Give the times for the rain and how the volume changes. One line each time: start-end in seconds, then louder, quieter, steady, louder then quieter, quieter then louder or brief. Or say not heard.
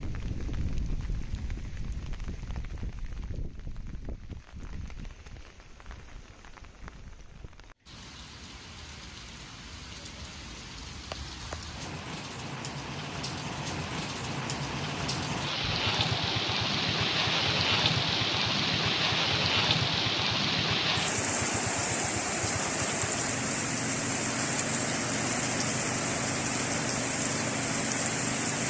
0.0-28.6 louder.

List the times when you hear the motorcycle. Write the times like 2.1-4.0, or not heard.
15.6-28.6.